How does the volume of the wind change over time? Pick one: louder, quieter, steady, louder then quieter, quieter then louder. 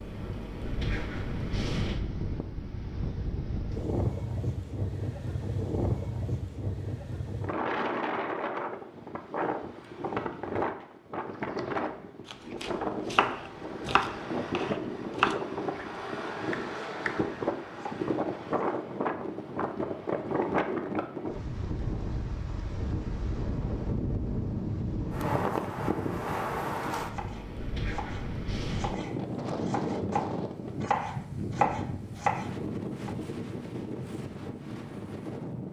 steady.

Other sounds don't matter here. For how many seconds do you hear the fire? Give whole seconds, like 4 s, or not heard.
not heard.